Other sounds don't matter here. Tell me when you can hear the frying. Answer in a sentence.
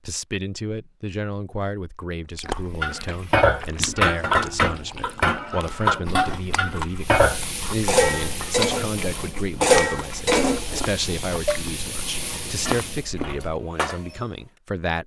The frying can be heard from 7.0 to 13.1 s.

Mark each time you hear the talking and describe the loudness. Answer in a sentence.
The talking can be heard from 0.1 to 15.0 s, at a steady volume.